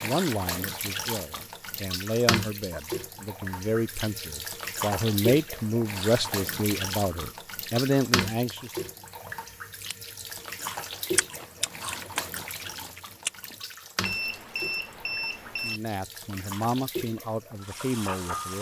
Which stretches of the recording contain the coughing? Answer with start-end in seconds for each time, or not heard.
not heard.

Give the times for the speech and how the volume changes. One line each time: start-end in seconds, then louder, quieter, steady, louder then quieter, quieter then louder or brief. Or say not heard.
0.0-8.7 louder
15.6-18.5 brief.